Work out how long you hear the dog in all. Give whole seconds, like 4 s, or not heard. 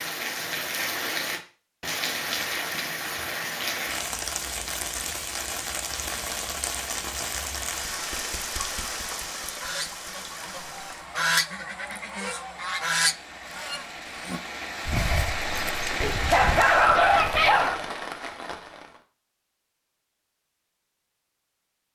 3 s.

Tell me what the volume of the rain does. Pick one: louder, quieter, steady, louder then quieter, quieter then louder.
quieter then louder.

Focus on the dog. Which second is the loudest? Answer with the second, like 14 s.
17 s.